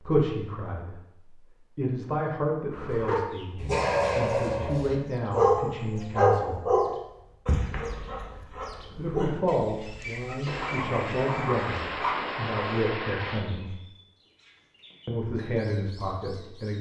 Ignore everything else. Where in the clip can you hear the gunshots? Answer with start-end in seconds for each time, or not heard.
10.4-13.5.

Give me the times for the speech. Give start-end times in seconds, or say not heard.
0.0-6.7, 8.9-13.7, 15.1-16.7.